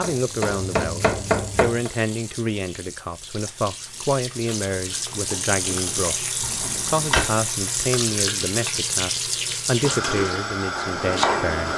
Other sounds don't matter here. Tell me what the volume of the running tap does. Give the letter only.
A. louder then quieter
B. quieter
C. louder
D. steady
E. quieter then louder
C.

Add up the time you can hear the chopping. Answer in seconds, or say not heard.
4 s.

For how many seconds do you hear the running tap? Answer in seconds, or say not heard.
12 s.